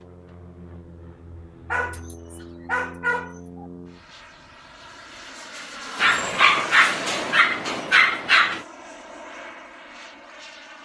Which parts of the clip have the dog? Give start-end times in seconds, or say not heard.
1.7-3.6, 6.0-8.6.